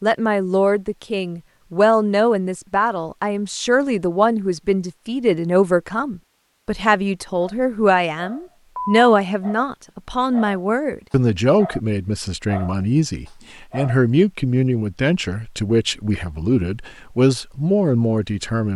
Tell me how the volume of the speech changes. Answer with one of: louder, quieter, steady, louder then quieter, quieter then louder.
steady.